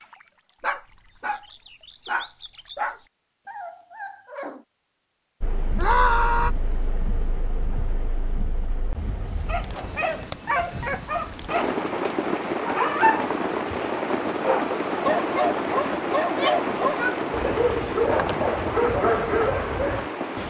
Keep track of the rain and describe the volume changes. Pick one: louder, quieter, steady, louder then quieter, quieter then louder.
louder.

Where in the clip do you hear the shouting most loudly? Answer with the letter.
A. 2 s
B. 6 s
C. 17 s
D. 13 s
B.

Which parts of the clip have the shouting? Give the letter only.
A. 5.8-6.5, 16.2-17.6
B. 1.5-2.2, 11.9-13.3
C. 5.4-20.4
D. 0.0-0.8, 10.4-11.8
A.